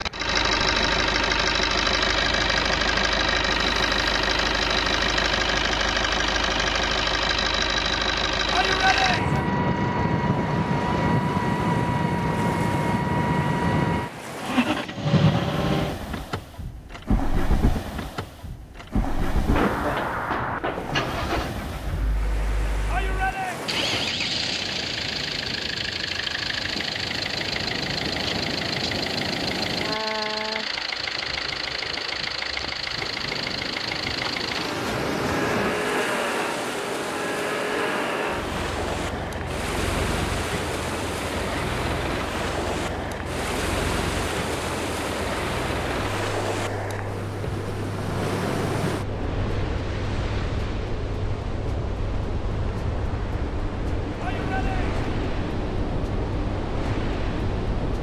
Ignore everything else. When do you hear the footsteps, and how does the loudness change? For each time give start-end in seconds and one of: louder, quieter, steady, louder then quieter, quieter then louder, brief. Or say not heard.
not heard.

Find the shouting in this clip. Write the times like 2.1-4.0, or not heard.
8.5-9.5, 22.9-23.6, 54.2-55.0.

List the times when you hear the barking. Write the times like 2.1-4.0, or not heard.
not heard.